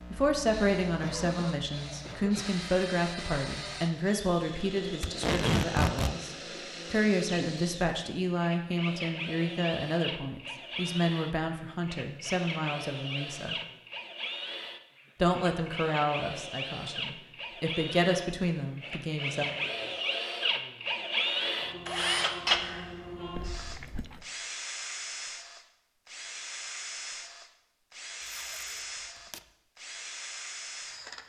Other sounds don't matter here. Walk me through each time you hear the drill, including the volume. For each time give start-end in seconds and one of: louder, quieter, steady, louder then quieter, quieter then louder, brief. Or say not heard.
0.0-31.2 louder then quieter.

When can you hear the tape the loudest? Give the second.
5 s.